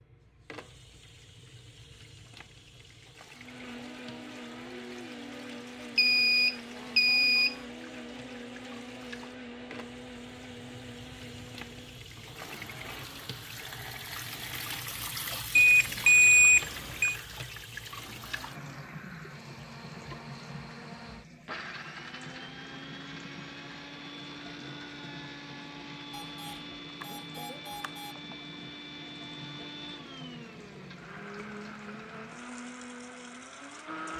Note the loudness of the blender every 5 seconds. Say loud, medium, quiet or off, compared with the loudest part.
loud, loud, medium, medium, loud, loud, loud.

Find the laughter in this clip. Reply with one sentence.
The laughter can't be heard in this clip.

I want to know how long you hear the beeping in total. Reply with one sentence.
The beeping can be heard for 5 seconds in total.